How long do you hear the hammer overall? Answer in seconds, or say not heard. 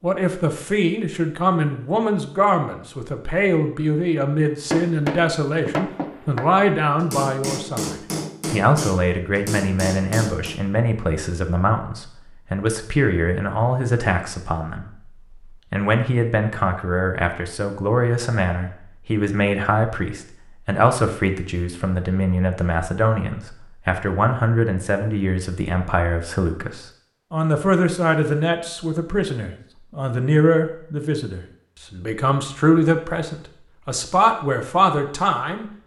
6 s.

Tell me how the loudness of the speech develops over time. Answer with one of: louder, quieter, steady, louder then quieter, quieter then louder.
steady.